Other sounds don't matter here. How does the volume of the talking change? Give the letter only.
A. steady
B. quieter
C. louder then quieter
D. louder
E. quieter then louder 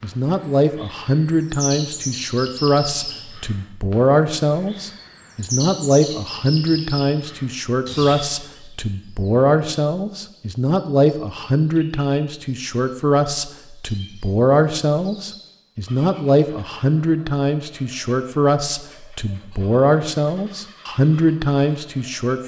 A.